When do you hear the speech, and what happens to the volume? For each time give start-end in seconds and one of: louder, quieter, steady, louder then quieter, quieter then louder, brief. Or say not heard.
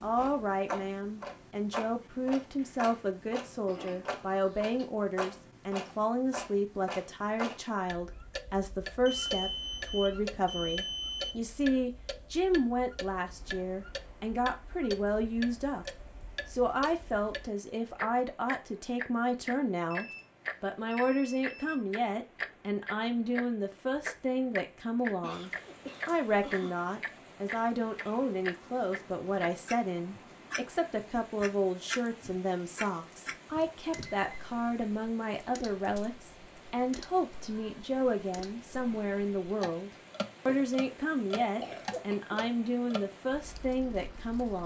0.0-44.6 steady.